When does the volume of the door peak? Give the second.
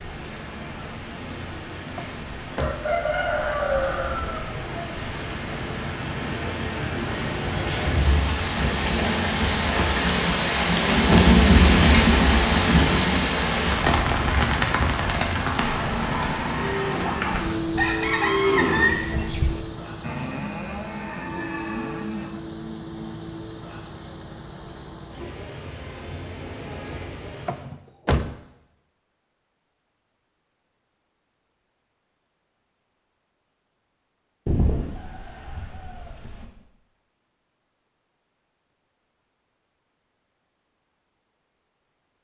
28 s.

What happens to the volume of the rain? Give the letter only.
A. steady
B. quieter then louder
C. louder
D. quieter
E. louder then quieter
E.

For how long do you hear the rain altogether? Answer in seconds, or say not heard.
28 s.